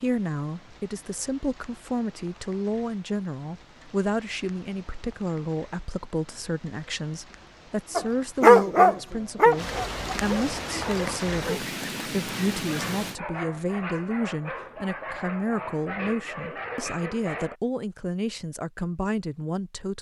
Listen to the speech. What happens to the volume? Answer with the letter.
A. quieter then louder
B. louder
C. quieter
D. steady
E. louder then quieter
D.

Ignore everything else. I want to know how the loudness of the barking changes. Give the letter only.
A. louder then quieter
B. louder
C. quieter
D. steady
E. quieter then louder
C.